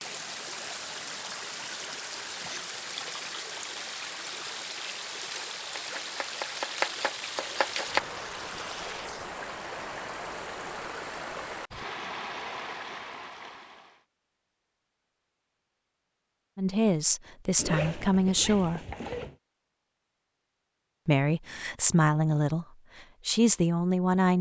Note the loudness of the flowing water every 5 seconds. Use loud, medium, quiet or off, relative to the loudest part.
loud, loud, loud, off, off.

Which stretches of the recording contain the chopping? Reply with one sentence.
You can hear the chopping from 5.8 to 8.0 s.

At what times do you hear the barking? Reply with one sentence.
The barking can't be heard in this clip.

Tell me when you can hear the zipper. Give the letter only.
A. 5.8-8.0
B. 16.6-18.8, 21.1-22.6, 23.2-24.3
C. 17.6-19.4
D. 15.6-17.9
C.